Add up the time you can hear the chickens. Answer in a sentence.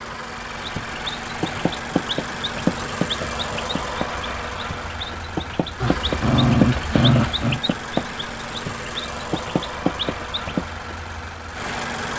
The chickens can be heard for 10 seconds in total.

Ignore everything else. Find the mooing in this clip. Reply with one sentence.
The mooing can't be heard in this clip.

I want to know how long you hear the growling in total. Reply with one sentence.
You can hear the growling for 2 seconds altogether.